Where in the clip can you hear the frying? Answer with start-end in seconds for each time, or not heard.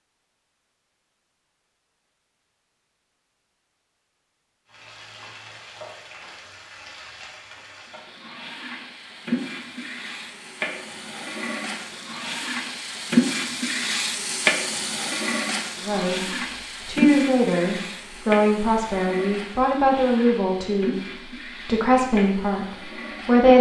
4.7-23.5.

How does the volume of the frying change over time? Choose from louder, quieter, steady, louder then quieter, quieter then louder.
louder then quieter.